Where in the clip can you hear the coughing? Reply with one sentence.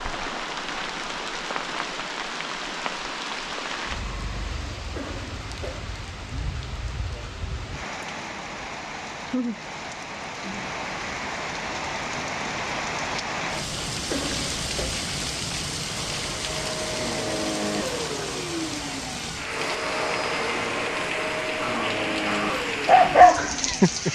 You can hear the coughing from 5.0 to 5.9 s and from 14.1 to 14.9 s.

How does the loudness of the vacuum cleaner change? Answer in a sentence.
The loudness of the vacuum cleaner stays about the same.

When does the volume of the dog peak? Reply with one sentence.
The volume of the dog peaks at 23 seconds.